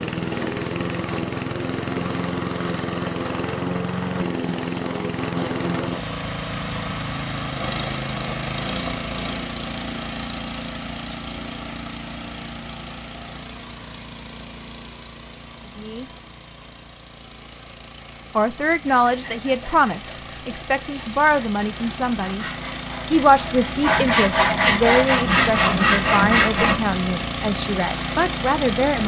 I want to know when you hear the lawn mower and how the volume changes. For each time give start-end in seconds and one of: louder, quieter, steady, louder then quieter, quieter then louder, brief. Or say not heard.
0.0-29.0 quieter then louder.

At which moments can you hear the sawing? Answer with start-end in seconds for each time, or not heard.
18.9-26.8.